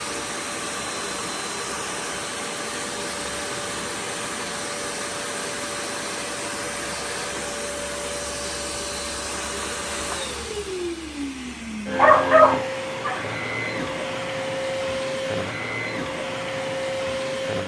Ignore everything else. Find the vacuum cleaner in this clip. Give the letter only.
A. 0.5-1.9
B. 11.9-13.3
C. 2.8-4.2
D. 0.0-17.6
D.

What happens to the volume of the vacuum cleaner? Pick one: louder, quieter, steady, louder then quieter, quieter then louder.
steady.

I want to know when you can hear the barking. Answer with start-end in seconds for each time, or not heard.
11.9-13.3.